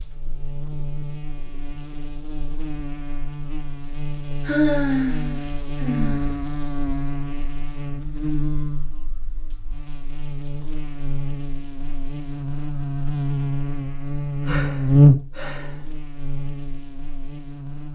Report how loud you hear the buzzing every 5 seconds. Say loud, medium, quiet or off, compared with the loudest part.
quiet, medium, medium, loud.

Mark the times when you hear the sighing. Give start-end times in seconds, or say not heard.
4.4-6.3, 14.4-15.8.